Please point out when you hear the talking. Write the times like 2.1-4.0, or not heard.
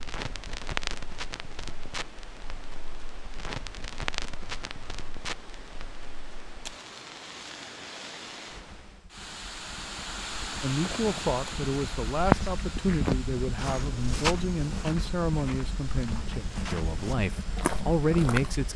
10.6-18.7.